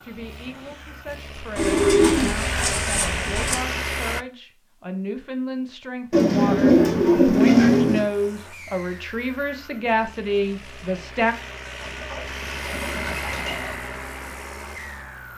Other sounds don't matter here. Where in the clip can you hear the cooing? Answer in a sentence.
You can hear the cooing from 1.6 to 3.5 s, from 6.1 to 8.1 s and from 11.8 to 13.8 s.